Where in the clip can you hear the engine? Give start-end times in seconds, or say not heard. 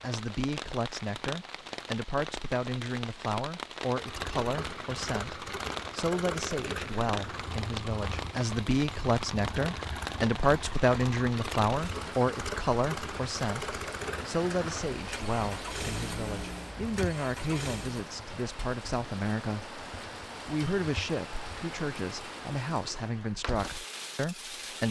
3.9-18.1.